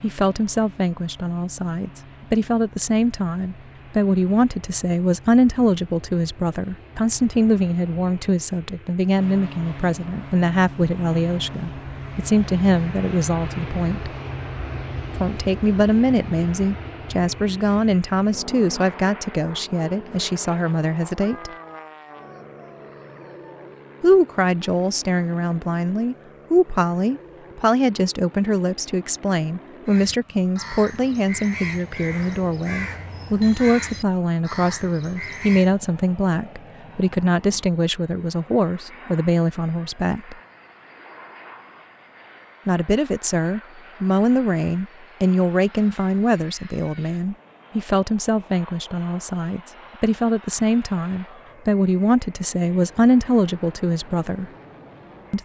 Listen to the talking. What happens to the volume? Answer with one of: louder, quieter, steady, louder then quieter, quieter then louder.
steady.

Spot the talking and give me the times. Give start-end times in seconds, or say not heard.
0.0-14.1, 15.2-21.5, 24.0-40.4, 42.6-54.5.